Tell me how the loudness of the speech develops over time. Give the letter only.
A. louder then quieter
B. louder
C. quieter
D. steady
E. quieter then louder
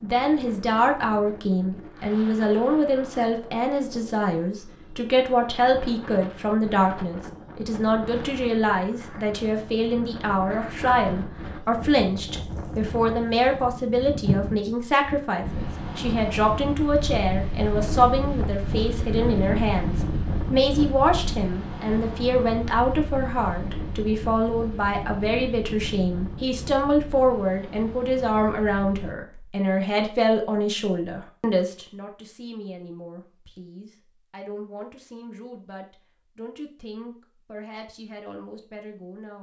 C.